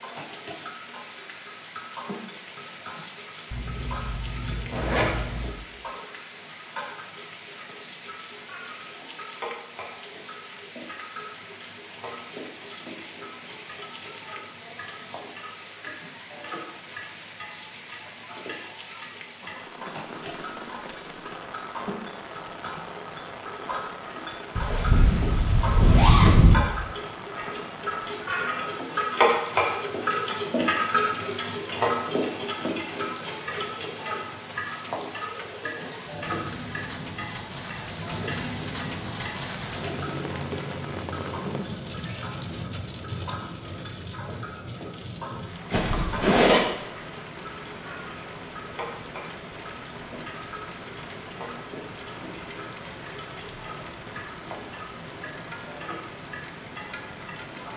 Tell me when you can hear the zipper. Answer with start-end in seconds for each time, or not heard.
3.5-5.5, 24.6-26.6, 45.7-46.6.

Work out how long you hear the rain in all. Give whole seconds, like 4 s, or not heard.
58 s.